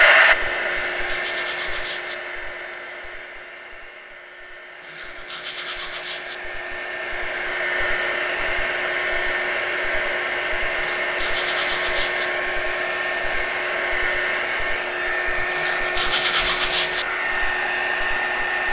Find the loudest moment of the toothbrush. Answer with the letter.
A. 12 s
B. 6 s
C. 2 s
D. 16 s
D.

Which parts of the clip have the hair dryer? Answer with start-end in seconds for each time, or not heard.
0.0-18.6.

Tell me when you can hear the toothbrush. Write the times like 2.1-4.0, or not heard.
0.6-2.1, 4.8-6.3, 10.7-12.2, 15.5-17.1.